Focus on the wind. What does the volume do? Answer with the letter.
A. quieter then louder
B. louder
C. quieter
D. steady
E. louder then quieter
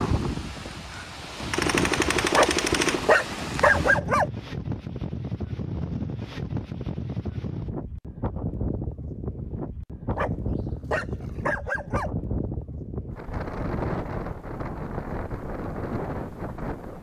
D.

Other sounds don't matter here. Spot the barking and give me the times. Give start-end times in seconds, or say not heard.
2.3-4.2, 10.1-12.1.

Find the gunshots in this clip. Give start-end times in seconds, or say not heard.
1.5-3.1.